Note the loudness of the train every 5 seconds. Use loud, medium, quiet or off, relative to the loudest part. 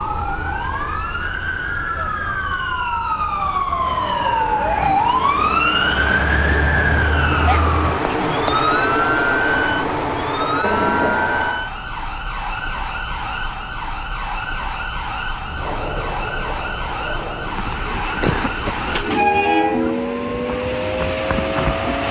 quiet, loud, loud, loud, loud.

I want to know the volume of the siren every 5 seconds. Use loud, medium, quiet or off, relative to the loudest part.
loud, loud, medium, medium, medium.